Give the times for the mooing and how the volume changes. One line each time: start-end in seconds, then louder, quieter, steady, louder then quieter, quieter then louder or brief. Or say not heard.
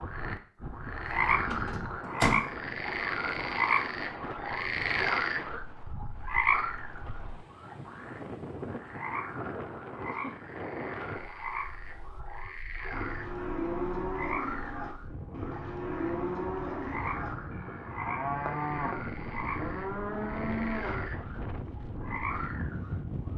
12.9-21.1 steady.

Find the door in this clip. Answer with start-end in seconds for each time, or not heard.
1.4-2.5.